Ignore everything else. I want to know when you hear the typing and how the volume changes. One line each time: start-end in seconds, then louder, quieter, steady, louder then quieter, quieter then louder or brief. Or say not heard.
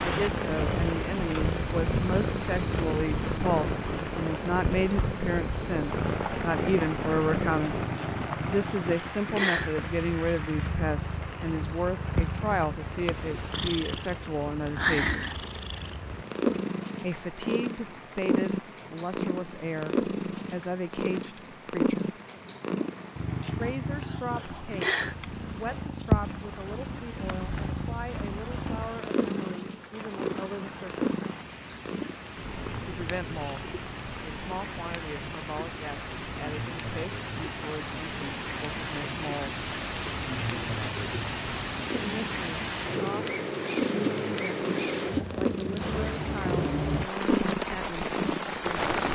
not heard.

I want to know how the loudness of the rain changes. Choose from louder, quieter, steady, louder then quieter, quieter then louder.
quieter then louder.